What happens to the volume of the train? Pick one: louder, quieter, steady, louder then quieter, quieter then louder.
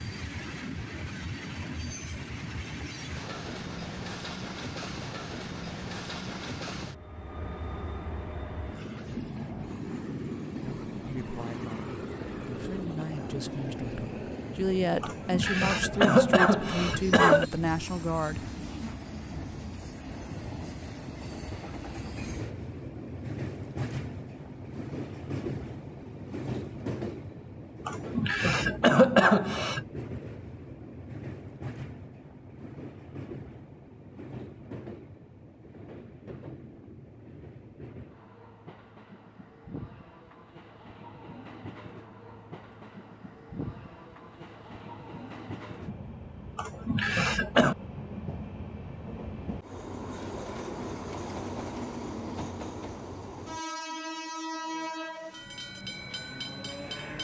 quieter then louder.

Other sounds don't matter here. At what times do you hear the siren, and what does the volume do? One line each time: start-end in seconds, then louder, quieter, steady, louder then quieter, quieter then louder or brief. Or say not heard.
not heard.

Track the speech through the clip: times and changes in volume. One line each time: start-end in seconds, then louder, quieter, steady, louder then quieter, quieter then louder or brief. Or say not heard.
10.6-18.6 louder.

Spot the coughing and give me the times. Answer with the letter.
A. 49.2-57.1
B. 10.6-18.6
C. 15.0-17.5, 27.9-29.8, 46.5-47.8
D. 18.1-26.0
C.